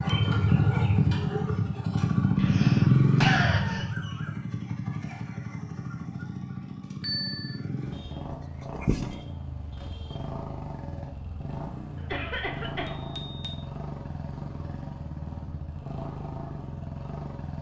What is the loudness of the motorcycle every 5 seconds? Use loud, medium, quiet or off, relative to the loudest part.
loud, quiet, quiet, quiet.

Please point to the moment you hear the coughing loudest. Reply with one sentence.
The volume of the coughing peaks at 3 seconds.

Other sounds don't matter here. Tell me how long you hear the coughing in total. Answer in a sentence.
You can hear the coughing for 3 seconds altogether.